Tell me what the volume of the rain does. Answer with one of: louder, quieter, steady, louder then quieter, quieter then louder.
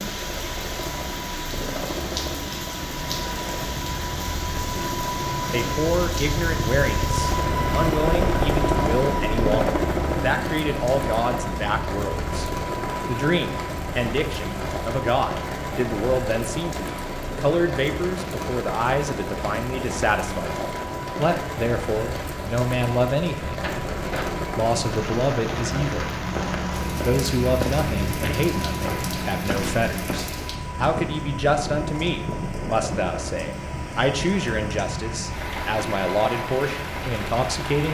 steady.